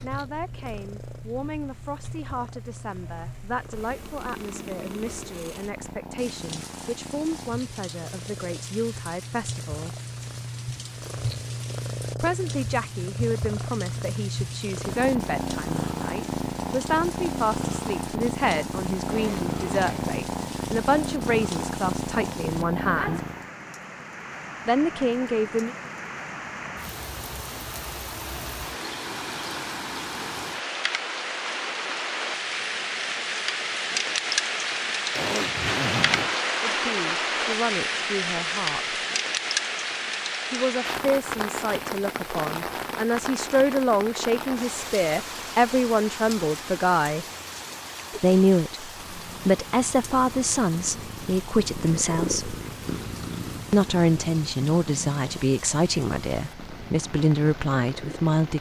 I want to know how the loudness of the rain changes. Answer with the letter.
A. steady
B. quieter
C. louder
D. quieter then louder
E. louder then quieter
E.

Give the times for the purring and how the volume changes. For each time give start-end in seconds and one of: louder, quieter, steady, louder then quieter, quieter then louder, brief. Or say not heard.
0.0-23.5 louder
49.0-58.4 louder then quieter.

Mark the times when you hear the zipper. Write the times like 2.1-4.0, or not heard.
19.1-20.2, 35.1-36.4.